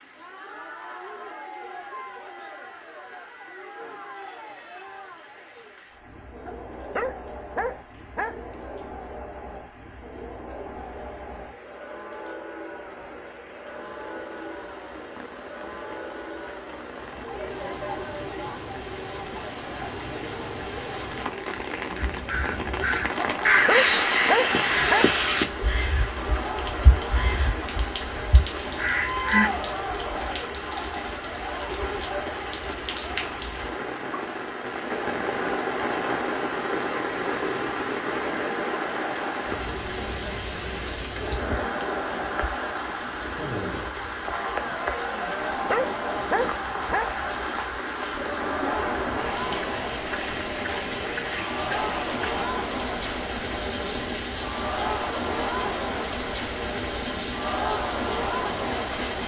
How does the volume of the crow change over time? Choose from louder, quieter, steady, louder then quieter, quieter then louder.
quieter then louder.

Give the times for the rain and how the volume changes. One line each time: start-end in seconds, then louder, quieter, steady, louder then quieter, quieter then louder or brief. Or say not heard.
0.0-59.2 louder.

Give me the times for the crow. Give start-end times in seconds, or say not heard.
21.9-29.5.